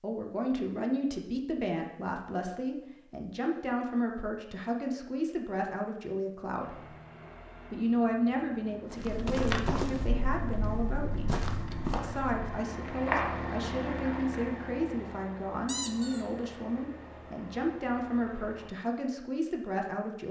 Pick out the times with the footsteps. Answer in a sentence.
You can hear the footsteps from 8.8 to 14.5 s.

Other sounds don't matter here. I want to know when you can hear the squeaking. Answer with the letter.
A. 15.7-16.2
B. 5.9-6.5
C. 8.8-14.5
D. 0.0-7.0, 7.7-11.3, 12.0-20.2
A.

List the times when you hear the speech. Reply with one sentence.
You can hear the speech from 0.0 to 7.0 s, from 7.7 to 11.3 s and from 12.0 to 20.2 s.